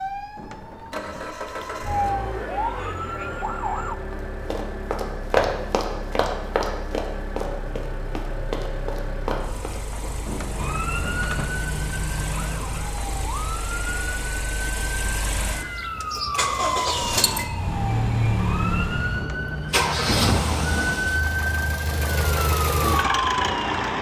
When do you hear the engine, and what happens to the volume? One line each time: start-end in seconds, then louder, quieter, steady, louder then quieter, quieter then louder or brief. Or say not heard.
0.0-23.9 louder.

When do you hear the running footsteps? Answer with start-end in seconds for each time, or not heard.
4.1-10.1.